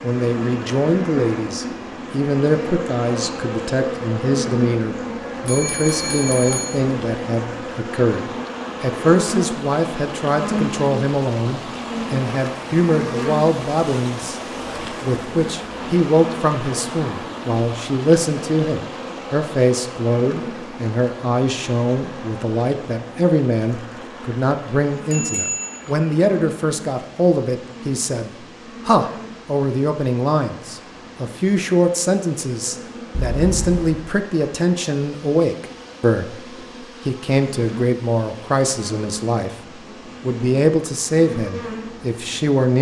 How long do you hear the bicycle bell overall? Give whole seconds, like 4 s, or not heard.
3 s.